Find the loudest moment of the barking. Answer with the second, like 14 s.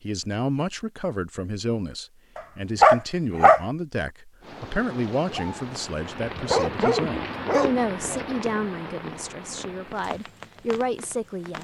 3 s.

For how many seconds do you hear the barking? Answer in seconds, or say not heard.
3 s.